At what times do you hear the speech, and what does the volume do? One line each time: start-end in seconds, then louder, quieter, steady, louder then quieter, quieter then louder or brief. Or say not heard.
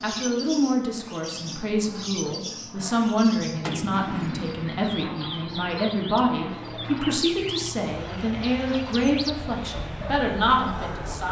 0.0-11.2 steady.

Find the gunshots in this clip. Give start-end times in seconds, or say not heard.
3.6-5.1.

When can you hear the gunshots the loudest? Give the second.
4 s.